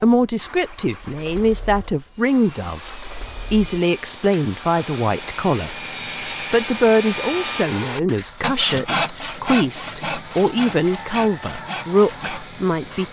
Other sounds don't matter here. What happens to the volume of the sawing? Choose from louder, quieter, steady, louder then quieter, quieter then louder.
louder then quieter.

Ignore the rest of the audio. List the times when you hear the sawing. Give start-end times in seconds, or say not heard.
2.1-13.0.